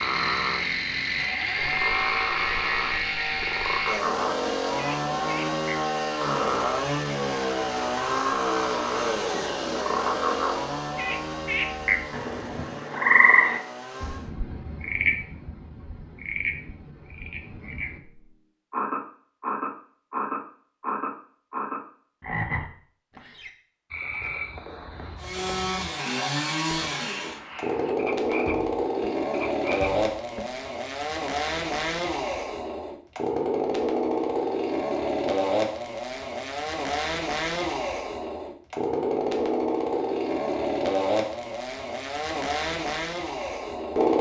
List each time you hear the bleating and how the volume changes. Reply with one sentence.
The bleating can't be heard in this clip.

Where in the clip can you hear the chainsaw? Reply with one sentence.
The chainsaw can be heard from 0.0 to 14.3 s and from 25.1 to 44.1 s.